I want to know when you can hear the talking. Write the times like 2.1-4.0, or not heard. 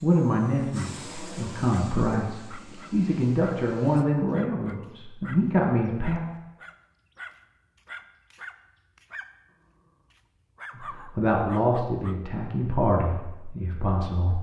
0.0-6.2, 10.8-14.3.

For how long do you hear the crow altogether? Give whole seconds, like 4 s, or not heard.
not heard.